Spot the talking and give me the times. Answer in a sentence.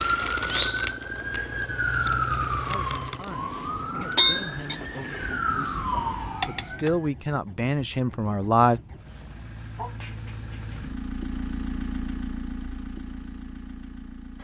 The talking can be heard from 2.6 to 8.8 s.